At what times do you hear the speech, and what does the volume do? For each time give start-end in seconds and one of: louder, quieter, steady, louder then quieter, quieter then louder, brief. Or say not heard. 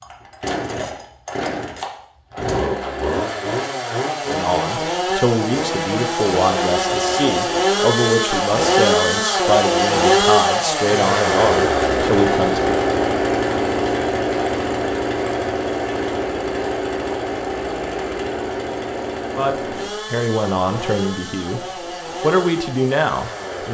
4.2-12.8 steady
19.4-23.6 quieter then louder.